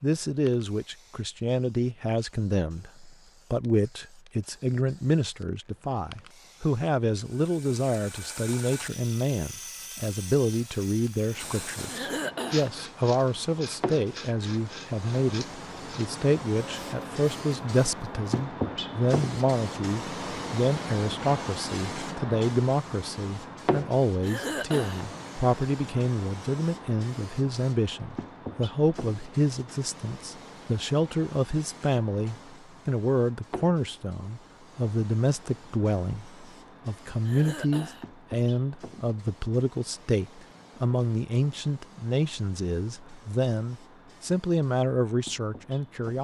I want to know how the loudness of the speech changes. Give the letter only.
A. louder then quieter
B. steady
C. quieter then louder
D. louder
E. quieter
B.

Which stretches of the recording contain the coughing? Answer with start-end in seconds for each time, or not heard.
11.9-12.7, 24.2-25.1, 37.2-38.0.